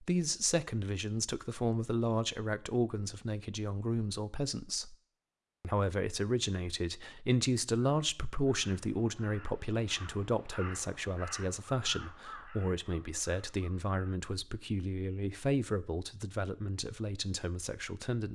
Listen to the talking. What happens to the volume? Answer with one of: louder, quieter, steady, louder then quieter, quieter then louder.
steady.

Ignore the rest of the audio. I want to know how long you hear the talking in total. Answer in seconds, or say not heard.
18 s.